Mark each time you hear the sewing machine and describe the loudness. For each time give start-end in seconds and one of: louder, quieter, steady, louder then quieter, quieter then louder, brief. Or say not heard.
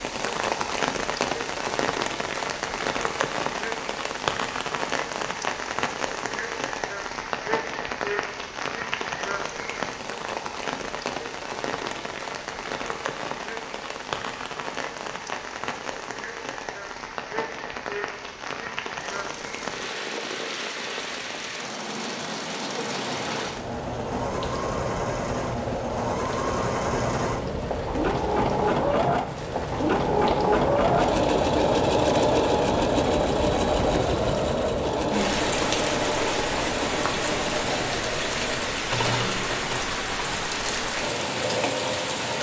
18.9-42.3 louder then quieter.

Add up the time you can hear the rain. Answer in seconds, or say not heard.
42 s.